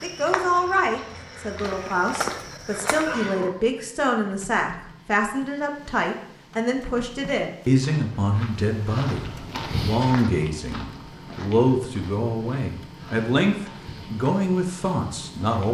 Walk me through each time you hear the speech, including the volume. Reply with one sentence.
You can hear the speech from 0.0 to 15.6 s, at a steady volume.